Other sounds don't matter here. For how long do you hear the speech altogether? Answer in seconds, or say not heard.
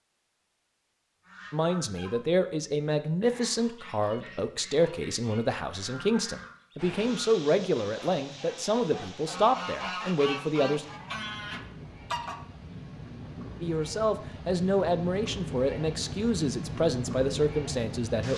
14 s.